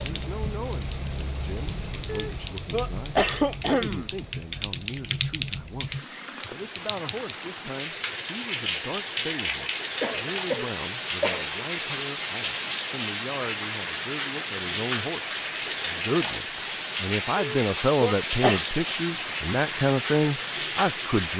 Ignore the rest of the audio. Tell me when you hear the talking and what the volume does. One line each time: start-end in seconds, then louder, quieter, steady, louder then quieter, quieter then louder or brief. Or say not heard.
0.1-21.3 louder.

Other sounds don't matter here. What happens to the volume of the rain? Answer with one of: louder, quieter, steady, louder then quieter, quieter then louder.
louder.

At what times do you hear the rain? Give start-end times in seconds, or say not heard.
0.0-21.3.